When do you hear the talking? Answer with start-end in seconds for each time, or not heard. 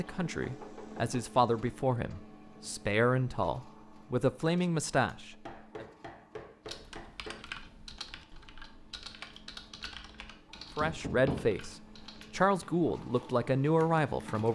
0.0-5.8, 10.8-14.5.